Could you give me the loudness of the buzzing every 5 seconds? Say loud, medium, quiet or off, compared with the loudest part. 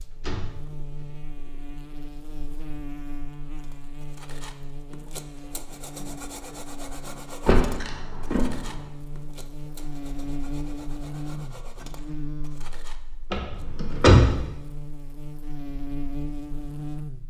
medium, medium, loud, loud.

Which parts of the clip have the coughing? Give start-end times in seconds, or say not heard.
not heard.